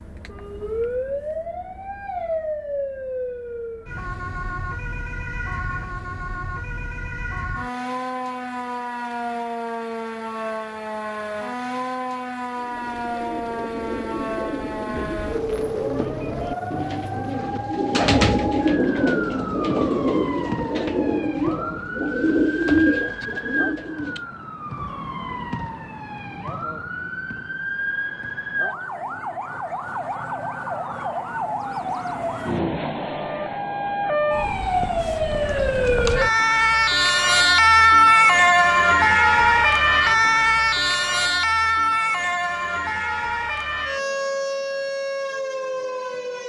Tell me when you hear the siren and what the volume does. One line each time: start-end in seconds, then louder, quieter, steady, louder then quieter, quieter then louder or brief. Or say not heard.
0.0-46.4 louder.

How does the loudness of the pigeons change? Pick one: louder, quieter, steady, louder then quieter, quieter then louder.
louder.